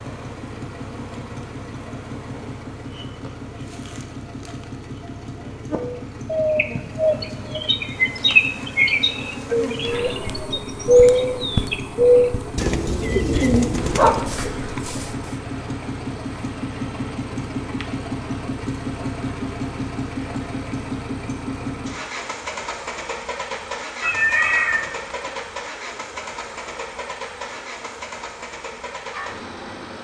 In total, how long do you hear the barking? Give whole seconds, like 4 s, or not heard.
2 s.